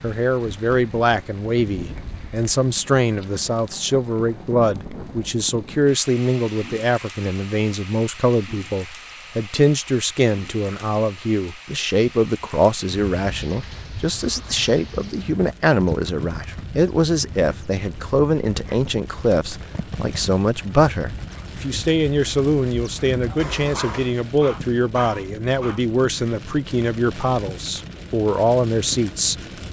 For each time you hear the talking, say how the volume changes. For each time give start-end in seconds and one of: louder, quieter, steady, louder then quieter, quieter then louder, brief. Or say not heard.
0.0-29.4 steady.